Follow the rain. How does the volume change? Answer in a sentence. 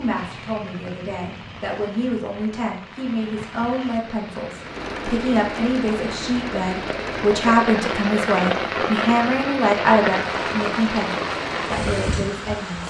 The volume of the rain goes up.